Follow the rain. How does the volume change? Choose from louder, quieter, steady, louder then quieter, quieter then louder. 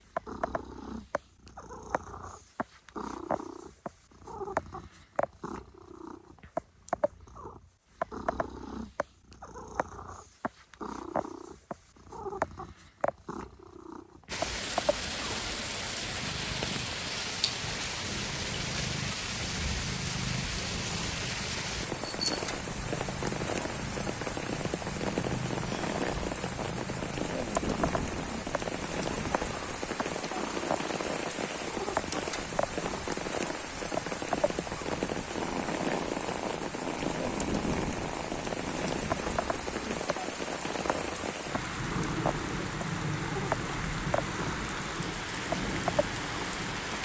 steady.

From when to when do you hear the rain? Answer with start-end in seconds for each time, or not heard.
14.2-47.0.